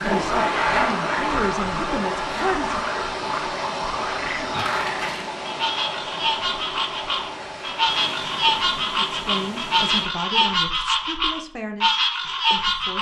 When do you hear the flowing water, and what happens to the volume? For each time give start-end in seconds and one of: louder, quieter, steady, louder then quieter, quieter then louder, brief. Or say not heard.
0.0-10.1 quieter.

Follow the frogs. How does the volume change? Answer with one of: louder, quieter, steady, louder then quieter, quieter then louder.
louder.